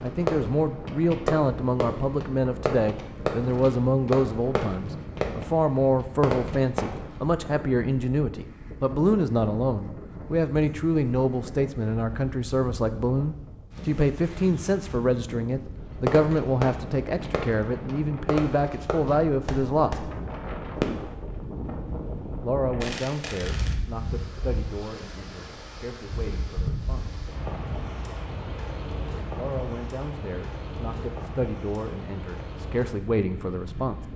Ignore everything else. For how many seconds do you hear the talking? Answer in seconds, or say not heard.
29 s.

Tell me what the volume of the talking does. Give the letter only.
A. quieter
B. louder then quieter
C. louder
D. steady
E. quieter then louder
A.